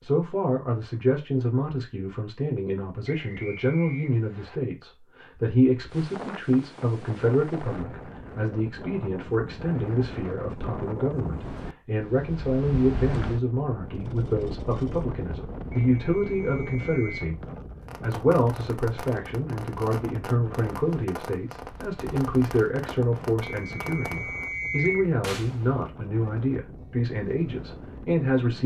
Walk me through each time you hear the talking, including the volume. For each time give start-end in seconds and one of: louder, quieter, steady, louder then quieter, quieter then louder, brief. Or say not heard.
0.0-28.6 steady.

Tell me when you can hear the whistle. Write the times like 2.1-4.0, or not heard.
3.0-4.6, 15.9-17.3, 23.4-25.1.